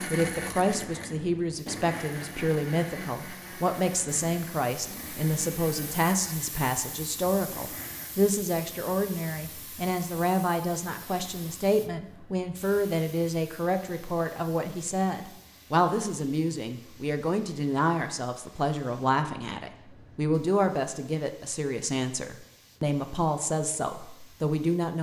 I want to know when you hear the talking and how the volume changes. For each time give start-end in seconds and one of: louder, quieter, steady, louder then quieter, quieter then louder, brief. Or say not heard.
0.1-24.9 steady.